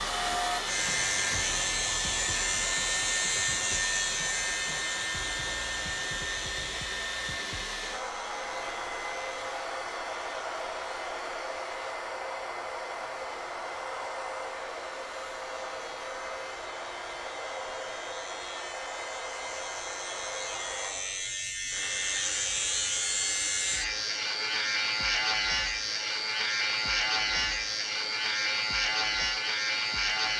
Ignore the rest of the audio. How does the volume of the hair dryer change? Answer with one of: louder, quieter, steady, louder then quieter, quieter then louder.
quieter.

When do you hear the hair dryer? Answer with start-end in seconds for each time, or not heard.
0.0-30.3.